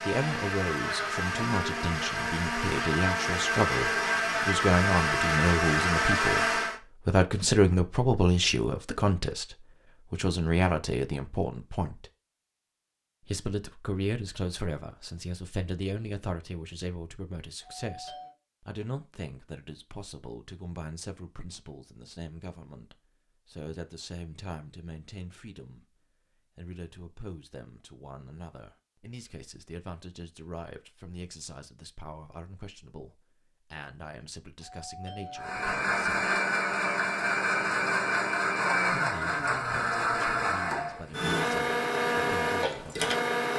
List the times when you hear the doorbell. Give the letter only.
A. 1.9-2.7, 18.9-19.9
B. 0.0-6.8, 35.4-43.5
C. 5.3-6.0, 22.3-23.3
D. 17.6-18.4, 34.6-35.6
D.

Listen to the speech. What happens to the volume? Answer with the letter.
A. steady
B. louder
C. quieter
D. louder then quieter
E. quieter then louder
C.